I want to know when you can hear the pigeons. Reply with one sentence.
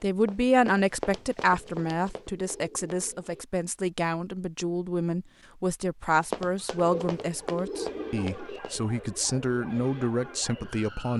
You can hear the pigeons from 1.6 to 3.5 s and from 6.8 to 8.6 s.